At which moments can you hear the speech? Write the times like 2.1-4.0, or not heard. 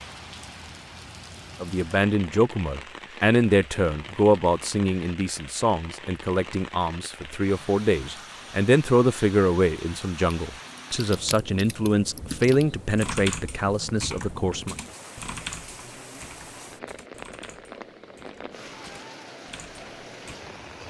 1.6-14.8.